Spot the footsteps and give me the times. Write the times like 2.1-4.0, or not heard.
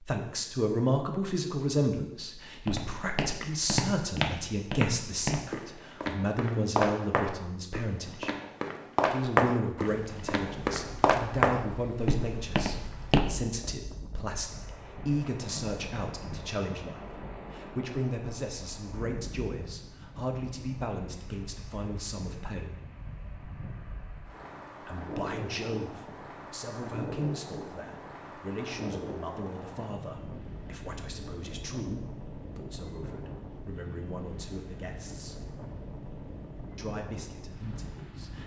2.6-13.4.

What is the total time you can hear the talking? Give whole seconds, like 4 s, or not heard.
34 s.